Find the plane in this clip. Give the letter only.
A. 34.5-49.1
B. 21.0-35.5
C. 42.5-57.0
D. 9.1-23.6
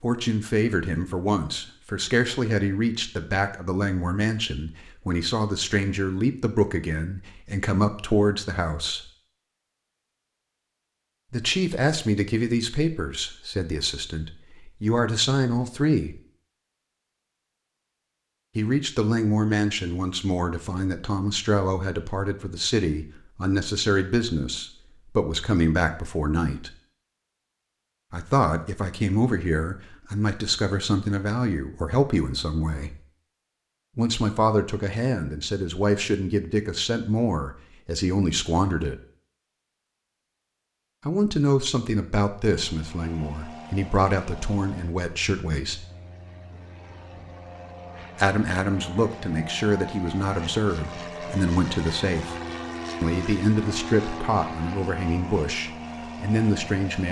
C.